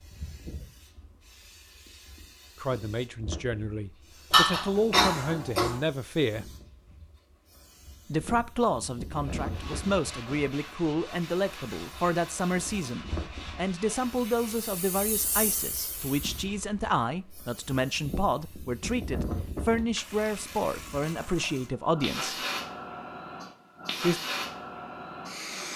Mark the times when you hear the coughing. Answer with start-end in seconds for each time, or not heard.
4.3-5.8.